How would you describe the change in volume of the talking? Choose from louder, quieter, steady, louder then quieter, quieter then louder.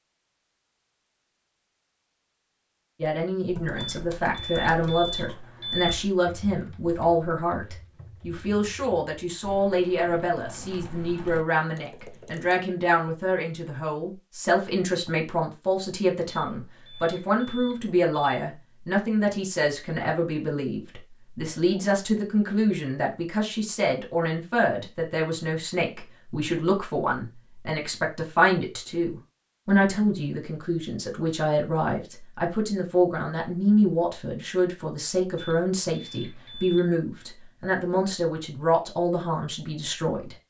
steady.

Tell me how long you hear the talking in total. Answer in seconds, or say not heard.
37 s.